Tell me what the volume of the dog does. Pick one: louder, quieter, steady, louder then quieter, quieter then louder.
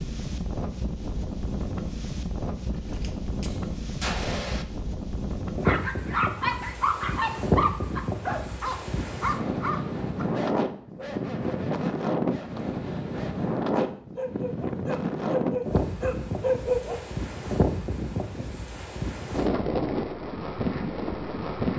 quieter then louder.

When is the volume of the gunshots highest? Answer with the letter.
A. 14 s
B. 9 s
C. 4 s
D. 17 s
C.